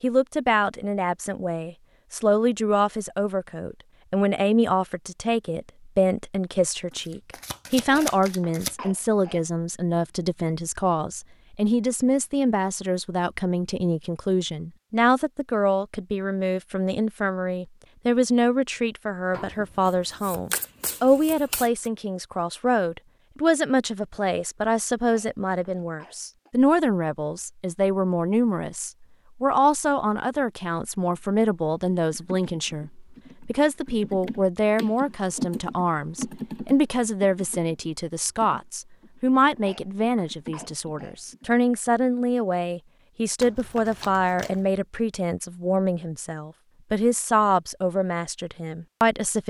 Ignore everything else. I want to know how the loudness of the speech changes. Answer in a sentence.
The volume of the speech stays about the same.